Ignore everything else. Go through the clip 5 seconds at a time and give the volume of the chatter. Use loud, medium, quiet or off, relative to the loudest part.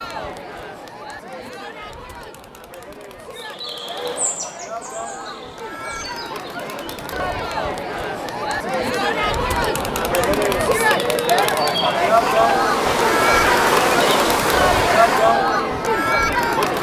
quiet, medium, loud, loud.